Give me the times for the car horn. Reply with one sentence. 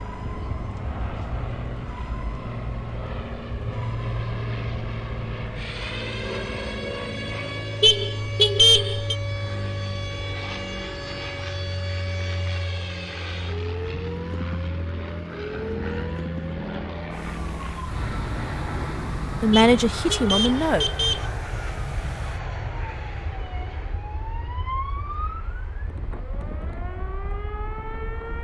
The car horn can be heard from 7.8 to 9.2 s and from 19.5 to 21.2 s.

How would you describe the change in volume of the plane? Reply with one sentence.
The loudness of the plane goes down.